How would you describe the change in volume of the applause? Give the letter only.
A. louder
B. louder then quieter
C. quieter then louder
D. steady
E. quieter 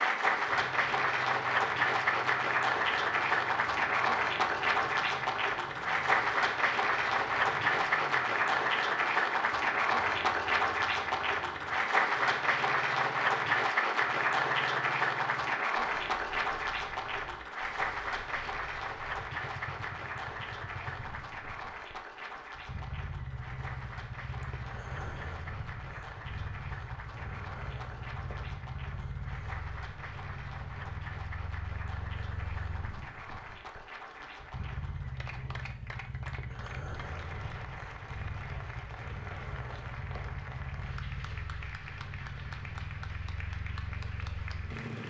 E.